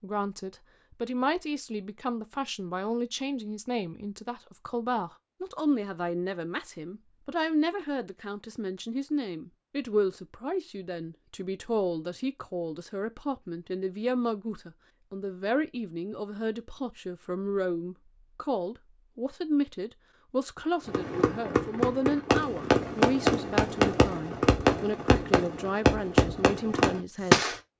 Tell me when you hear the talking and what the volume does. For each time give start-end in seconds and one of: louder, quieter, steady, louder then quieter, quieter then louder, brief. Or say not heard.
0.0-27.5 steady.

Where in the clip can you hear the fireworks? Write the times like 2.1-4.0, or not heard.
20.9-27.6.